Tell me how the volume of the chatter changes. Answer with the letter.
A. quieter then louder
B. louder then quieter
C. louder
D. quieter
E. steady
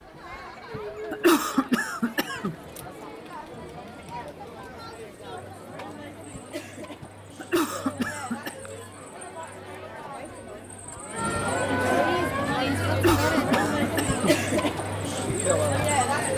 C.